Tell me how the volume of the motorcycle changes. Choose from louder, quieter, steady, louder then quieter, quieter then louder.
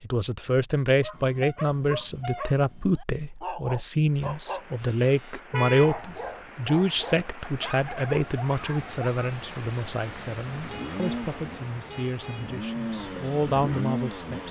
quieter then louder.